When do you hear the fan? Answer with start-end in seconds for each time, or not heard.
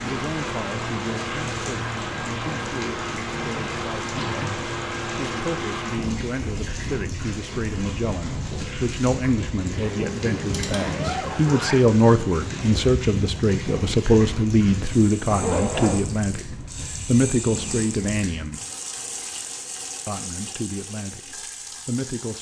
0.0-18.4.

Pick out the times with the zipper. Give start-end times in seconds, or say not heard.
3.4-4.8, 10.8-11.8, 15.3-16.1.